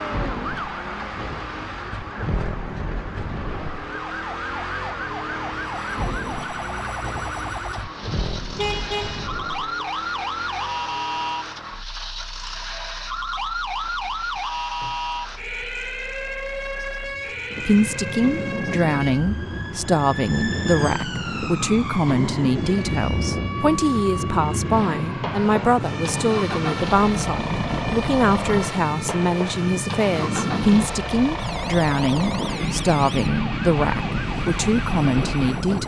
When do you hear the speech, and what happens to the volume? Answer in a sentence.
You can hear the speech from 17.6 to 35.8 s, at a steady volume.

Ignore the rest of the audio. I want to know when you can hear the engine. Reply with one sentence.
The engine can be heard from 0.0 to 35.8 s.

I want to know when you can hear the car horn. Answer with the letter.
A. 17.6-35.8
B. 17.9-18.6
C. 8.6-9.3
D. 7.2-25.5
C.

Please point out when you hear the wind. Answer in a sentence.
The wind can be heard from 17.5 to 35.8 s.